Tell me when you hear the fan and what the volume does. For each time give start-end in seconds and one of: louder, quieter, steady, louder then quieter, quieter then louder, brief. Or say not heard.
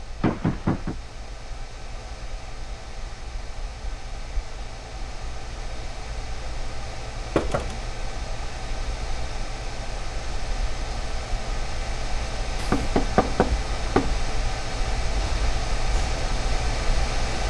0.0-17.4 louder.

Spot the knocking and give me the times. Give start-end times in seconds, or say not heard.
0.2-0.9, 7.3-7.8, 12.6-14.1.